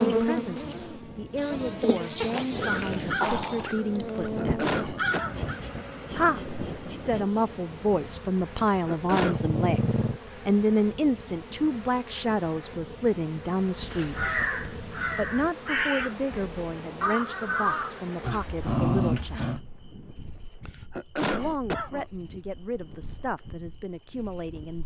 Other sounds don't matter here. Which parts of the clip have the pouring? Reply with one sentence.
You can't hear the pouring here.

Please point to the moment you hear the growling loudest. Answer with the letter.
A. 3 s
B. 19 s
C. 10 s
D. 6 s
B.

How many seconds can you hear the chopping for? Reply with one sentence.
You can't hear the chopping here.